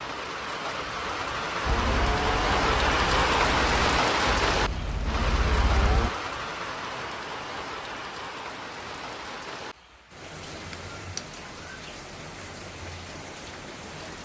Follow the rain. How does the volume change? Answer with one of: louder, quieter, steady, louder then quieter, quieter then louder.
quieter.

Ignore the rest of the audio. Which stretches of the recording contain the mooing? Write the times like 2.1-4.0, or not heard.
1.6-6.1.